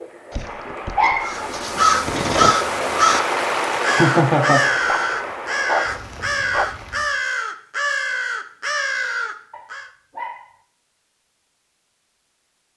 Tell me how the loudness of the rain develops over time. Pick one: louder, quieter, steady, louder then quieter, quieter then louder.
louder then quieter.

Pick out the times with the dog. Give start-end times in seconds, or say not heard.
0.3-2.5, 4.7-6.7, 9.5-10.5.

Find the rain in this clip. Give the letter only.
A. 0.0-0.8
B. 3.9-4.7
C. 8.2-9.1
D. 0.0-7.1
D.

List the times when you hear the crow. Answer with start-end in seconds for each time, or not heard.
1.2-3.2, 3.8-9.9.